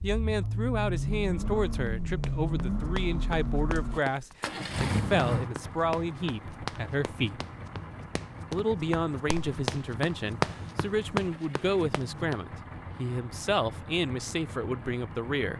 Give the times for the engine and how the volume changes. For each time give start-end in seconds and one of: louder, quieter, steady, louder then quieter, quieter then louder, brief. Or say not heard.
0.0-15.5 quieter.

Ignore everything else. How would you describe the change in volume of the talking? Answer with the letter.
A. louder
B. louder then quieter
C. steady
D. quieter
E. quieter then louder
C.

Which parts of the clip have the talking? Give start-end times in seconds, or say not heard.
0.0-7.4, 8.5-15.5.